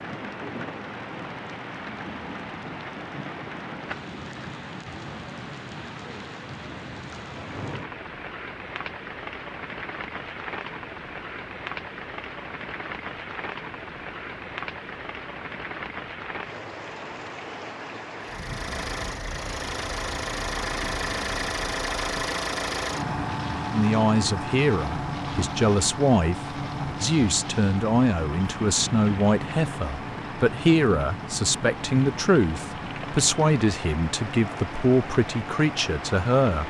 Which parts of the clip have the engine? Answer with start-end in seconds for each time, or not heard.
18.2-36.6.